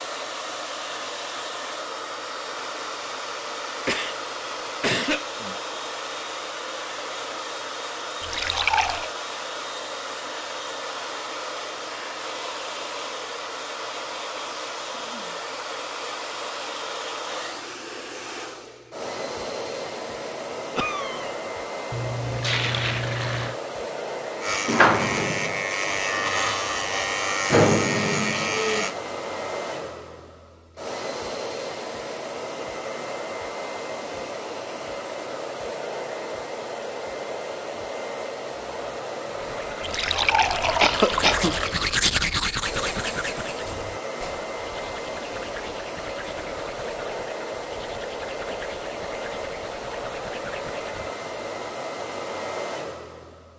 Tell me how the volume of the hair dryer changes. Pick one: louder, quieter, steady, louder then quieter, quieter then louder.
steady.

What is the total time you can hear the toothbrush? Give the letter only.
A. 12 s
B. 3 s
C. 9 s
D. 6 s
A.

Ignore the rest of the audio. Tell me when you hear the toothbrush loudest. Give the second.
42 s.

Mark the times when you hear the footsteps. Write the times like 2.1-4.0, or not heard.
not heard.